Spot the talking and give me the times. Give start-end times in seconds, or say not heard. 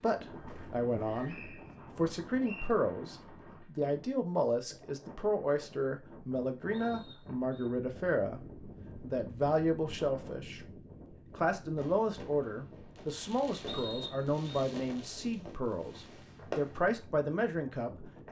0.0-10.6, 11.3-18.2.